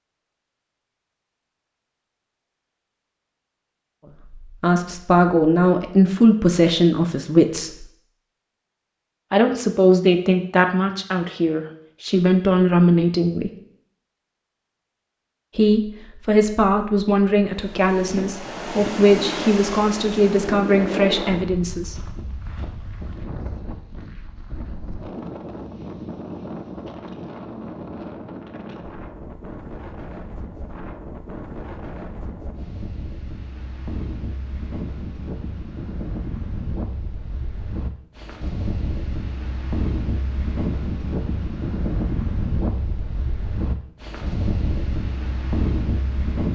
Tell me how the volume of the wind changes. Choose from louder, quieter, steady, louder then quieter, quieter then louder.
quieter then louder.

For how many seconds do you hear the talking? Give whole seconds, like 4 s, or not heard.
14 s.